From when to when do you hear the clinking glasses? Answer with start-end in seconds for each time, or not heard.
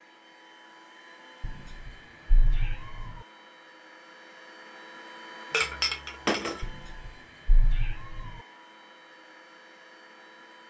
5.5-6.7.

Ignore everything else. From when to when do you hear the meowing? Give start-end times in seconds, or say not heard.
1.4-3.1, 6.6-8.3.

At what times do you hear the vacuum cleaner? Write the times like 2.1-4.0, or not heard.
0.0-10.6.